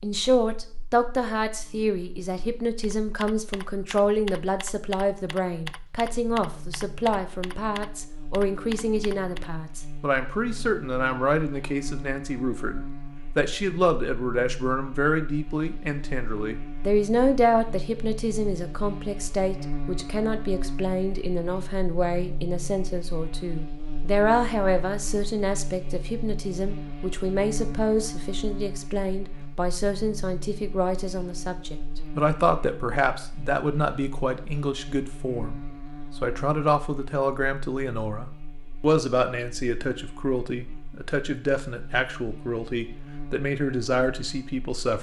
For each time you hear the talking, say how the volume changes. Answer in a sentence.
The talking can be heard from 0.0 to 44.9 s, at a steady volume.